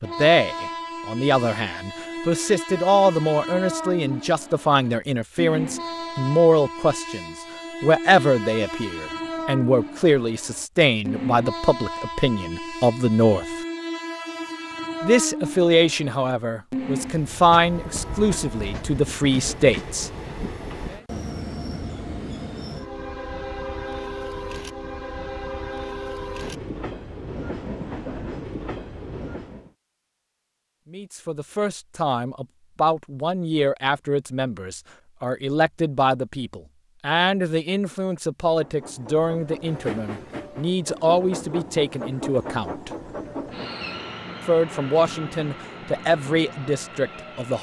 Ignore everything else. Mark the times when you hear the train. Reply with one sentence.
The train can be heard from 0.0 to 29.7 s and from 38.5 to 47.5 s.